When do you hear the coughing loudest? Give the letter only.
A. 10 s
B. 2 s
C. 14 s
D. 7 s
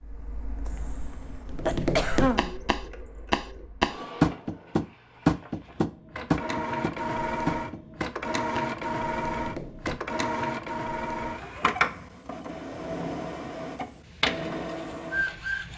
B.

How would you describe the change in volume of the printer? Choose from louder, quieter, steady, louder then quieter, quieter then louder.
louder.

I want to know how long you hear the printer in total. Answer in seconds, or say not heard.
16 s.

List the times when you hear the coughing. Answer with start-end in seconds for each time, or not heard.
0.7-2.5.